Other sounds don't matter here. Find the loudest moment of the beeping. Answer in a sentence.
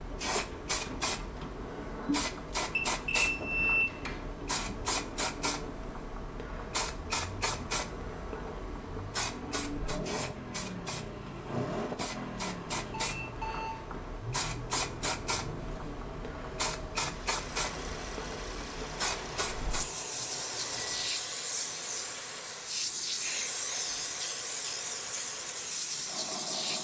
The loudest moment of the beeping is at 4 seconds.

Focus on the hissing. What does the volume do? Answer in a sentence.
The loudness of the hissing stays about the same.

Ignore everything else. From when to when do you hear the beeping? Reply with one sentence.
You can hear the beeping from 2.6 to 4.2 s, from 13.0 to 13.8 s and from 18.9 to 21.1 s.